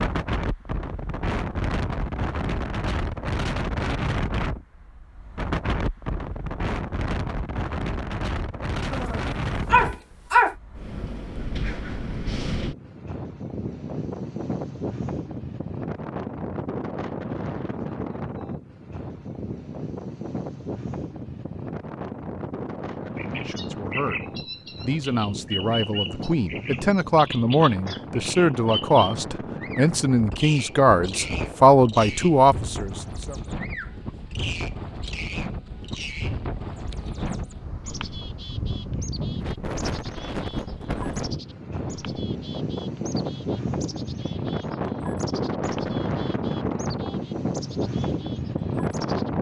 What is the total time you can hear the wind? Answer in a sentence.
You can hear the wind for 49 seconds altogether.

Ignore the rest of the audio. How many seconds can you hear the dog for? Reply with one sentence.
You can hear the dog for 2 seconds altogether.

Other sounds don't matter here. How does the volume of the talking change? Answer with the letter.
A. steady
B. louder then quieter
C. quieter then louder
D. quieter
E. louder
E.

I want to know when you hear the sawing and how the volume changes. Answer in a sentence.
You can't hear the sawing here.